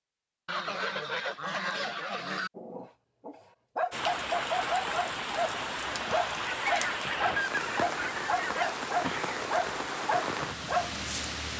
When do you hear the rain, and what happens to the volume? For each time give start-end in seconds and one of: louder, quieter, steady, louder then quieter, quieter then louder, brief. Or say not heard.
3.9-11.5 steady.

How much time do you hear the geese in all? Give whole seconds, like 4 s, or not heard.
4 s.